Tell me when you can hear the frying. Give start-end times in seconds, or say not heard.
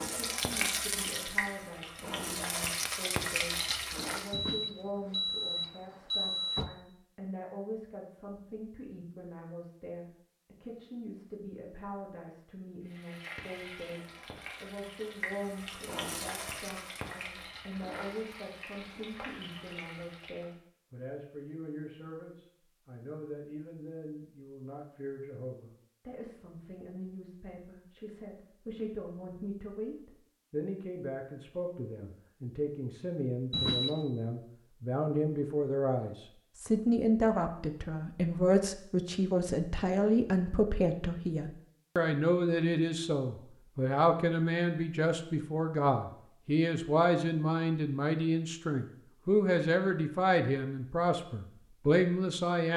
0.0-4.3, 12.8-20.6.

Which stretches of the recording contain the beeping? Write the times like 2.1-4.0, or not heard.
4.3-6.7, 33.5-34.0.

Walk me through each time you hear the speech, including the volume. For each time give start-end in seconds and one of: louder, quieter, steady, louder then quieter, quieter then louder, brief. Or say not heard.
0.1-52.7 louder.